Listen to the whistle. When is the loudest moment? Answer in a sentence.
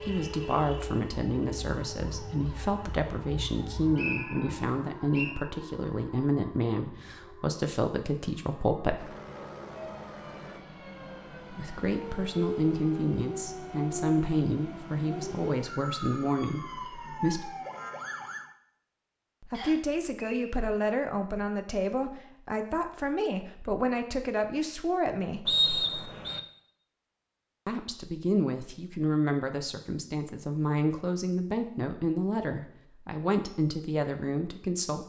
The volume of the whistle peaks at 26 seconds.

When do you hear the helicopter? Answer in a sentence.
You can hear the helicopter from 8.9 to 10.6 s.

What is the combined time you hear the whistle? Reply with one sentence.
You can hear the whistle for 3 seconds altogether.